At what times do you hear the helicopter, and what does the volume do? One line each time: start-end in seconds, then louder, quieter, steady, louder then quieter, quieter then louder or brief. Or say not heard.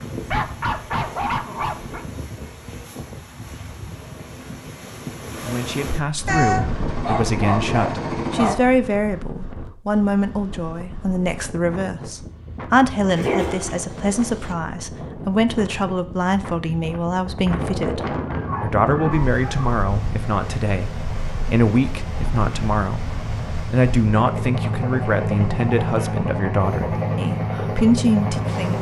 6.4-8.6 brief
18.4-28.7 louder.